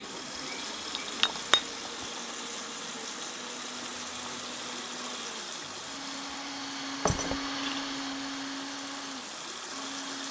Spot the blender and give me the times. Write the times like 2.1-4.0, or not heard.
0.0-10.2.